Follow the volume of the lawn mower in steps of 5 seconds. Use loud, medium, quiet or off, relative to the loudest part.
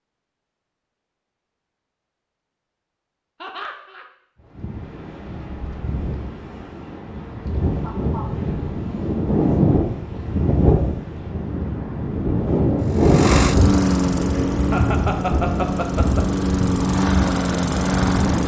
off, off, loud, loud.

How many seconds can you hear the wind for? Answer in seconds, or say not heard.
14 s.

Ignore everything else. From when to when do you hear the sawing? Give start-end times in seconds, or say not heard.
not heard.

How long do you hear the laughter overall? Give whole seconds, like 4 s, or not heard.
3 s.